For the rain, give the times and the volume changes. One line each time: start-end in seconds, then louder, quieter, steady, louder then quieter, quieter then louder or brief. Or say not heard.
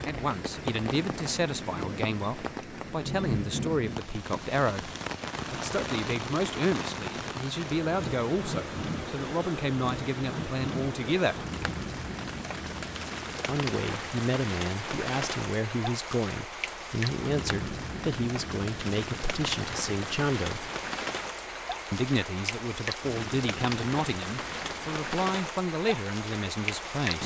0.0-27.2 steady.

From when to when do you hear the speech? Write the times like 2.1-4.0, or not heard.
0.1-4.9, 5.5-11.3, 13.4-20.7, 21.9-27.2.